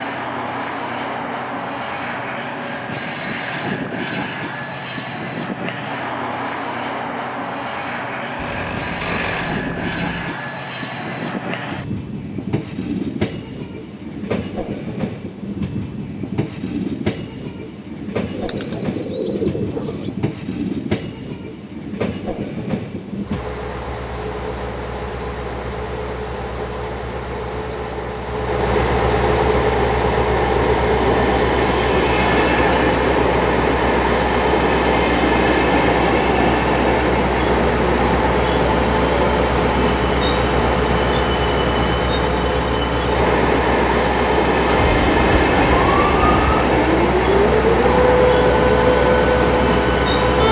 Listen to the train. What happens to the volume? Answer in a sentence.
The volume of the train goes up.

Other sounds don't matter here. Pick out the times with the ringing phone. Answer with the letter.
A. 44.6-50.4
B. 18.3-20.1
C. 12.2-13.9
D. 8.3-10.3
D.